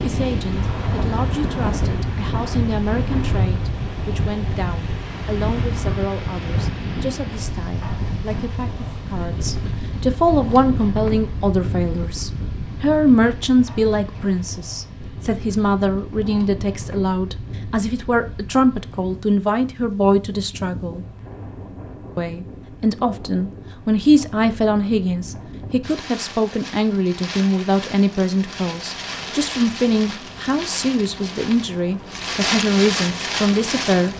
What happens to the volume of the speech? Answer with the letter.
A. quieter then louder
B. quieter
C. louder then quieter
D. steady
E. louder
E.